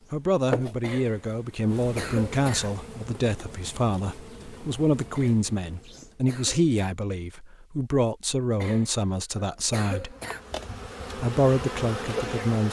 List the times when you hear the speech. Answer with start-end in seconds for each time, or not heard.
0.1-10.2, 11.2-12.6.